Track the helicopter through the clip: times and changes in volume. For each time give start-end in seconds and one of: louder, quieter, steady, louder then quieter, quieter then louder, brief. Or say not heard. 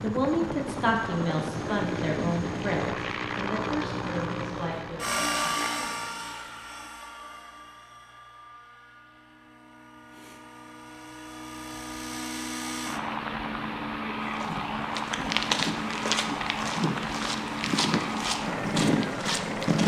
0.0-19.8 quieter then louder.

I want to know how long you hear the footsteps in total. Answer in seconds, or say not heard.
6 s.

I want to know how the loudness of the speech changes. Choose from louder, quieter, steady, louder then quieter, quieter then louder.
quieter.